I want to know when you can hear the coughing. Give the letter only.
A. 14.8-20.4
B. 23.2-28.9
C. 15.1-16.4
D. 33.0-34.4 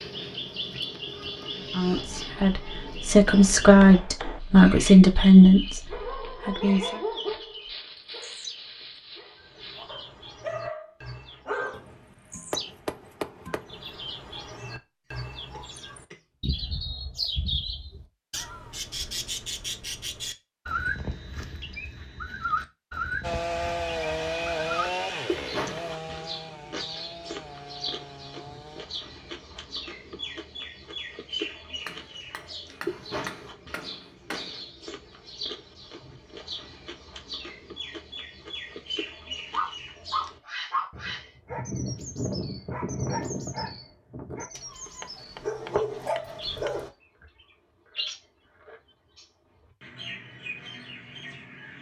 C.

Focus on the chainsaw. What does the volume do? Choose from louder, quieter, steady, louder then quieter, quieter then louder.
quieter.